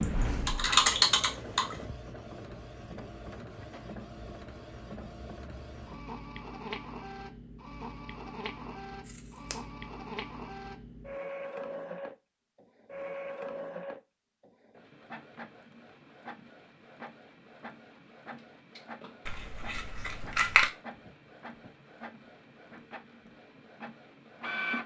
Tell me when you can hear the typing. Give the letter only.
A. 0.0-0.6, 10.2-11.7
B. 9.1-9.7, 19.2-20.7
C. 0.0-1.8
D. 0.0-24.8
C.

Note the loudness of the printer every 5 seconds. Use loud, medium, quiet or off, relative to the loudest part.
loud, loud, loud, medium, loud.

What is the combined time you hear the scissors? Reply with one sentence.
The scissors can be heard for 2 seconds in total.